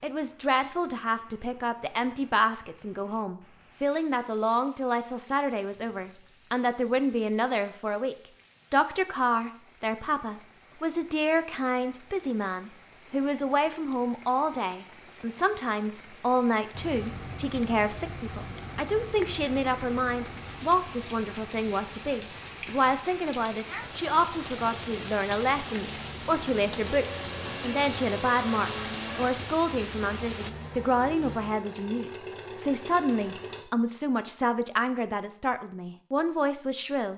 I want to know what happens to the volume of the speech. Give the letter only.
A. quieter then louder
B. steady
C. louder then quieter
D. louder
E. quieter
B.